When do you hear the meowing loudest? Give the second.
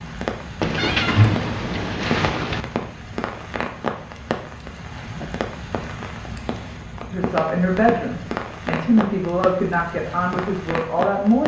1 s.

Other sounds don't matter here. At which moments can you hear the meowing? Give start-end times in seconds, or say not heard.
0.6-2.6.